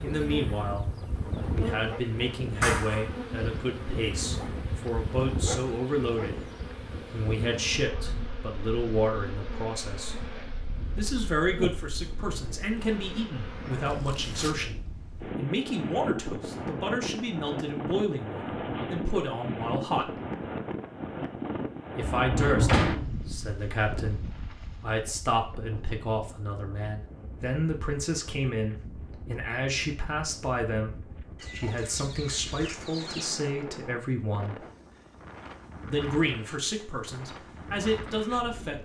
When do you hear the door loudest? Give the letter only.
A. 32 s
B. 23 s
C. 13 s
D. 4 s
B.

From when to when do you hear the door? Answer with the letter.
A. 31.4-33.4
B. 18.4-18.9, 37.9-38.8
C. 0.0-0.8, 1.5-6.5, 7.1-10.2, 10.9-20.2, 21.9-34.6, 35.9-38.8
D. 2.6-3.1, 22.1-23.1
D.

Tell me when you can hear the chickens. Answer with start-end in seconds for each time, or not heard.
31.4-33.4.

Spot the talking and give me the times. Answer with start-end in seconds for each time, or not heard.
0.0-0.8, 1.5-6.5, 7.1-10.2, 10.9-20.2, 21.9-34.6, 35.9-38.8.